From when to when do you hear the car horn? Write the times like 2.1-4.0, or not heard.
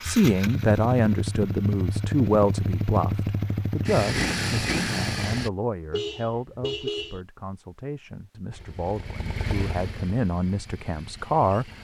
5.9-7.2.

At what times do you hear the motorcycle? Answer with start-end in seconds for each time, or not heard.
0.0-5.5, 8.5-11.7.